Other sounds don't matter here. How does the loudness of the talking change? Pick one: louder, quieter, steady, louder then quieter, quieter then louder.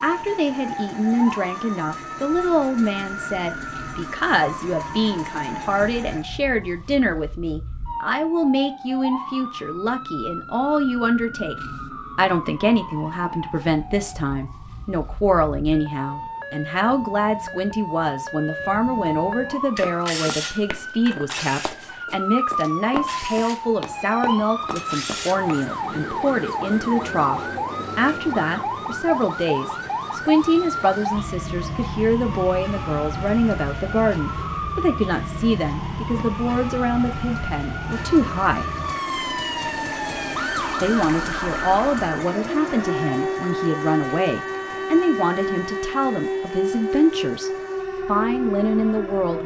steady.